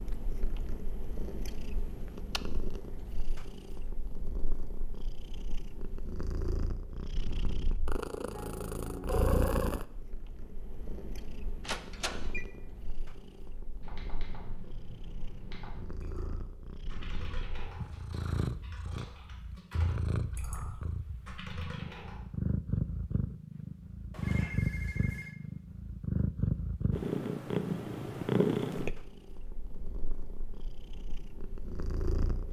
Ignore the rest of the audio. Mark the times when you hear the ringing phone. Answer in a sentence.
The ringing phone can be heard from 11.6 to 12.4 s and from 24.1 to 25.4 s.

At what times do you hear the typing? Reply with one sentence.
You can hear the typing from 13.8 to 22.2 s.